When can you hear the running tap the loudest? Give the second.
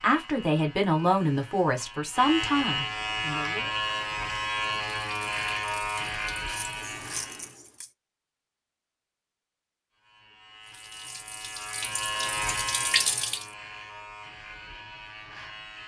13 s.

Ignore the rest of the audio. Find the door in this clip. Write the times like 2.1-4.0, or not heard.
not heard.